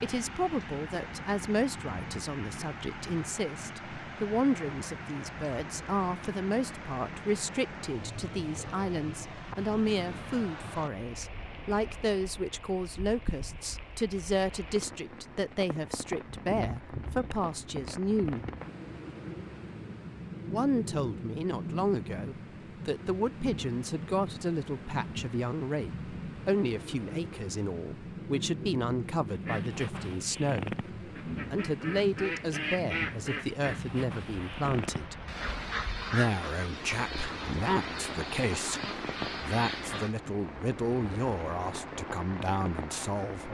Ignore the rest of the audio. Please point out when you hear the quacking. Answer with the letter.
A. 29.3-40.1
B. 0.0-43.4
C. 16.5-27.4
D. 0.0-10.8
A.